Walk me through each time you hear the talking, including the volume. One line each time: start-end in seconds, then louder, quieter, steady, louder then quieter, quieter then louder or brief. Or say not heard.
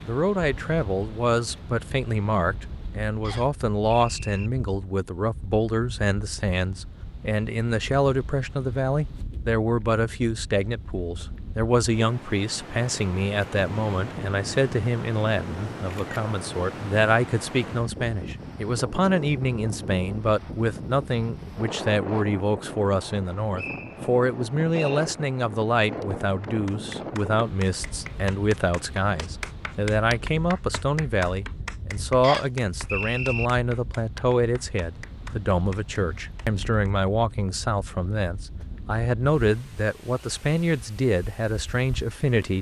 0.0-42.5 steady.